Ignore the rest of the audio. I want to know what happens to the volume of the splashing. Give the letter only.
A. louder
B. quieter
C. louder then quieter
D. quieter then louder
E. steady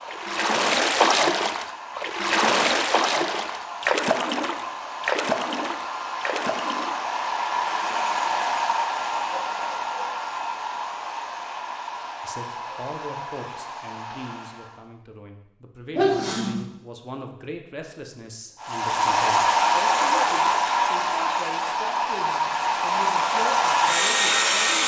B.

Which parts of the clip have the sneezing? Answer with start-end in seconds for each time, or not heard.
15.9-16.6.